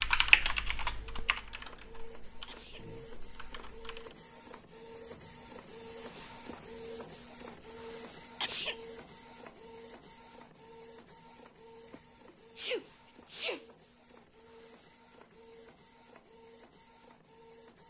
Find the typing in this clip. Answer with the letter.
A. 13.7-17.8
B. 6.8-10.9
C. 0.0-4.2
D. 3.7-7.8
C.